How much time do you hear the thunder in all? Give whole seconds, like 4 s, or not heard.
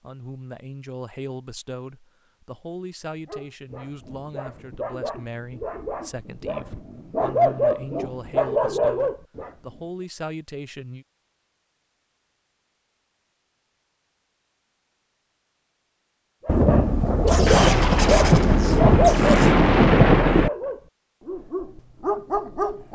4 s.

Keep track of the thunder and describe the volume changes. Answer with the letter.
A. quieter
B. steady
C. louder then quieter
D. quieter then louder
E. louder
E.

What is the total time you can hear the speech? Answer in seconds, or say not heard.
11 s.